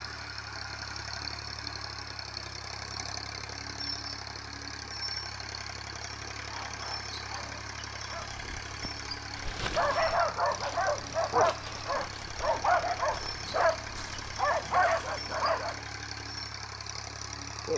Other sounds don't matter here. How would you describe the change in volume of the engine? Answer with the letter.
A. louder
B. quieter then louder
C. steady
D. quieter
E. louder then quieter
C.